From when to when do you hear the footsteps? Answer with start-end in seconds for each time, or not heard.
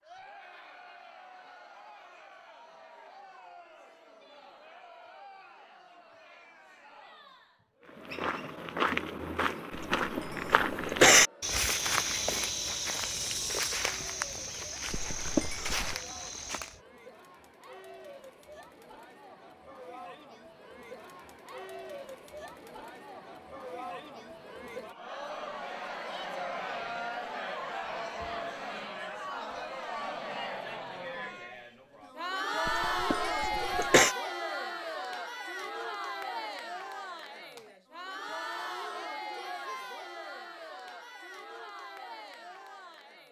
7.8-16.8.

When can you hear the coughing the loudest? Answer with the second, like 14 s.
11 s.